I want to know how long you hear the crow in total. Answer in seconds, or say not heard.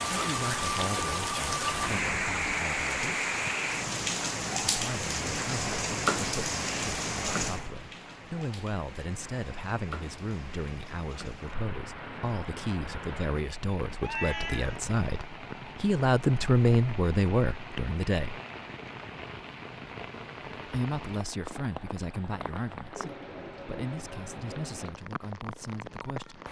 not heard.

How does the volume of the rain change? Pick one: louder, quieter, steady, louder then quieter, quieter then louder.
quieter.